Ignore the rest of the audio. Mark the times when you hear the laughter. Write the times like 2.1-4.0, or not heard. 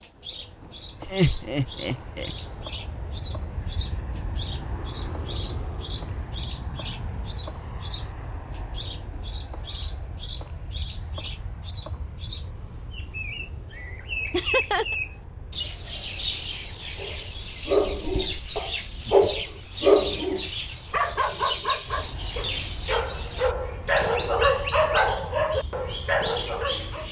1.0-2.3, 14.3-14.9, 18.9-19.5.